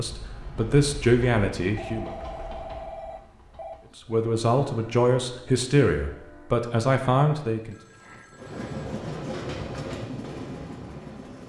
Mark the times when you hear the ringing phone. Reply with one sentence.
The ringing phone can be heard from 1.8 to 3.8 s and from 7.5 to 8.9 s.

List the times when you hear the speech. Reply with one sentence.
You can hear the speech from 0.0 to 2.1 s and from 4.0 to 7.8 s.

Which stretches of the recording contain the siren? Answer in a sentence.
The siren can't be heard in this clip.